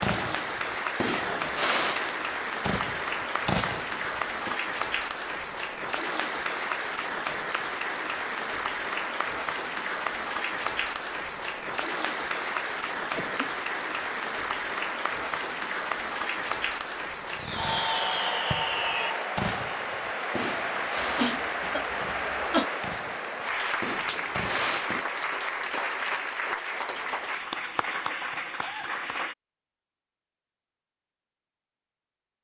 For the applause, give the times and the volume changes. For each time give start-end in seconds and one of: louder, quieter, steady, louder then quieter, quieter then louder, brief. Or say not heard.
0.0-29.4 steady.